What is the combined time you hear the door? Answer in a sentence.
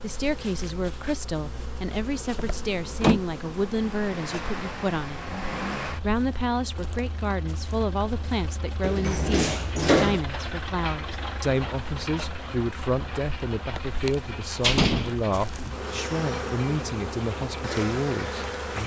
You can hear the door for 4 seconds altogether.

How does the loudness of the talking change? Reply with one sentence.
The loudness of the talking stays about the same.